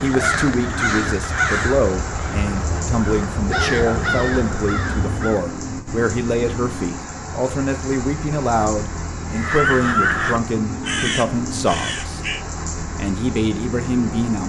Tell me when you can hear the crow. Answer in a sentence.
You can hear the crow from 0.0 to 5.5 s and from 9.3 to 12.4 s.